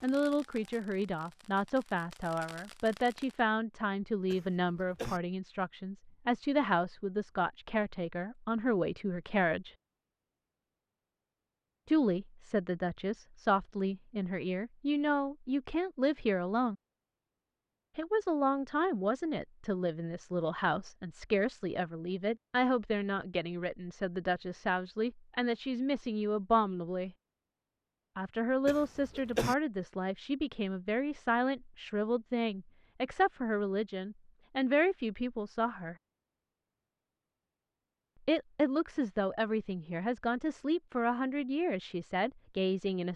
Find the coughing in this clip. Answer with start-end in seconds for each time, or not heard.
4.3-5.2, 28.6-29.6.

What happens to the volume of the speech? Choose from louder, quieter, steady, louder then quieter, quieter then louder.
steady.